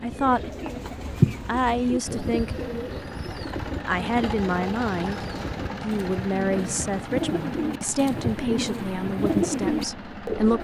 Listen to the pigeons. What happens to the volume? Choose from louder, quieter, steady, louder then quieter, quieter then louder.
quieter then louder.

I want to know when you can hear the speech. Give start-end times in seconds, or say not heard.
0.0-0.6, 1.4-2.7, 3.9-10.5.